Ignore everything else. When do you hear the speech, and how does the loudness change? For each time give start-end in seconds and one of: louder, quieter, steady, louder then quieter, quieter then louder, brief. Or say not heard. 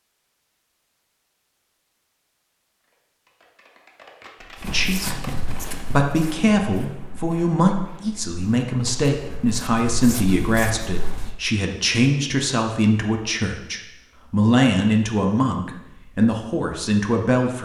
4.7-17.6 steady.